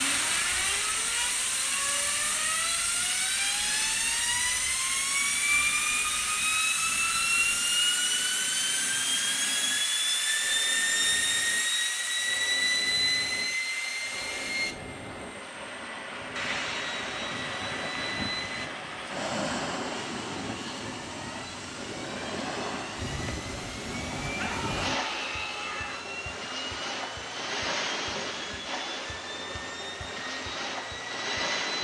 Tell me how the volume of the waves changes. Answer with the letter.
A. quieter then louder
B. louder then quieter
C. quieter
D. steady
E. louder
E.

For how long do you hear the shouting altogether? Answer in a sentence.
The shouting can be heard for 2 seconds in total.